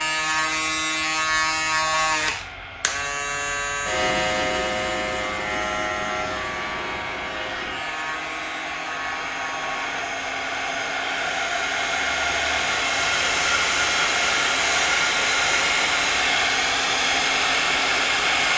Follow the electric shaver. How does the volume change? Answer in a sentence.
The loudness of the electric shaver goes down.